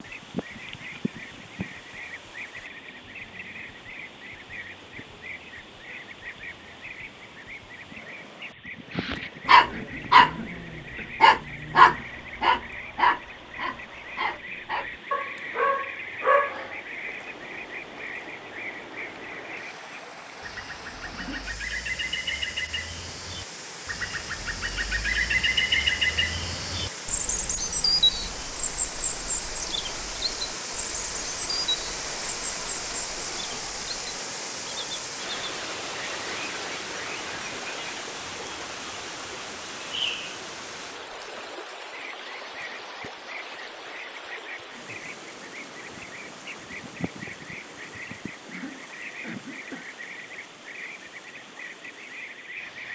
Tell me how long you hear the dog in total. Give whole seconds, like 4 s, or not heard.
8 s.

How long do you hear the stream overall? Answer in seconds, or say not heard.
53 s.